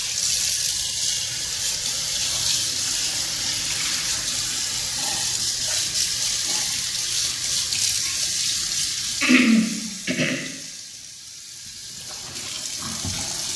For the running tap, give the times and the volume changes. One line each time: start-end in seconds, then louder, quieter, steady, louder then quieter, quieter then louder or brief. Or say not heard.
0.0-13.5 quieter.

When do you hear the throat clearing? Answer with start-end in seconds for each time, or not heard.
9.2-10.4.